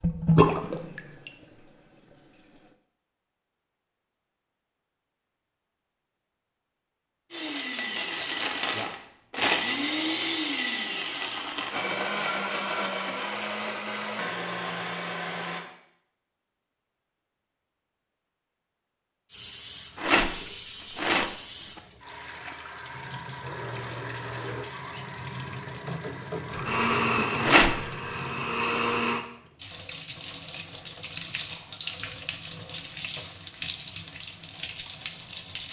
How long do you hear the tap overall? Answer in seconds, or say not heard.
19 s.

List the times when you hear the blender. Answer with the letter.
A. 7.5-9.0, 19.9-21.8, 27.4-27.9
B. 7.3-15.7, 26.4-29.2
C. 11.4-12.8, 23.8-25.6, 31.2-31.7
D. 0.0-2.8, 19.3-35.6
B.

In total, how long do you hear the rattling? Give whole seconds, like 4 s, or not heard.
4 s.